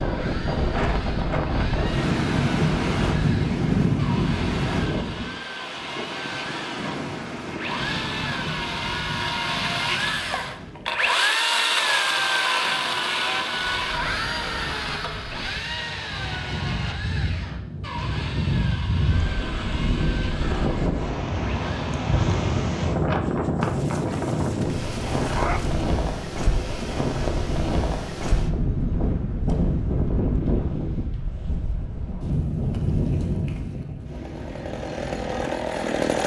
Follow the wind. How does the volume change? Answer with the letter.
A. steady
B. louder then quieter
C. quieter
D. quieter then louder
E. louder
D.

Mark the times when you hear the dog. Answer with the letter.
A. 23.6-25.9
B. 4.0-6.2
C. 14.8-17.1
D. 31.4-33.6
A.